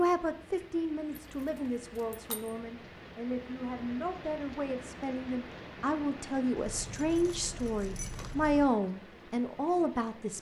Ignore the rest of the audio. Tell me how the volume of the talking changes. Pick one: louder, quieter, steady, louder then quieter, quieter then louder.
louder.